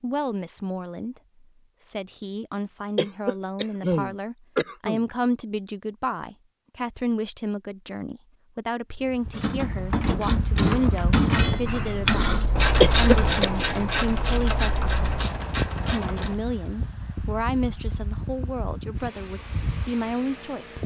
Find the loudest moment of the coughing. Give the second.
13 s.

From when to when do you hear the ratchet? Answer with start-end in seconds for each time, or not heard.
9.3-16.4.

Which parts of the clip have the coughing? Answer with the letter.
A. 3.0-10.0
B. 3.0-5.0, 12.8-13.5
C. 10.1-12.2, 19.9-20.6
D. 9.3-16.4
B.